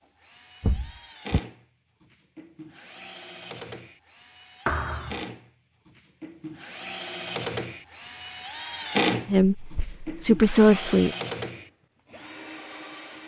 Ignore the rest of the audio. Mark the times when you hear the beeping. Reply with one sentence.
The beeping can't be heard in this clip.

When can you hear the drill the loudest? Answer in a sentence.
The volume of the drill peaks at 9 seconds.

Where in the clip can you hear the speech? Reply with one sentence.
You can hear the speech from 9.2 to 11.2 s.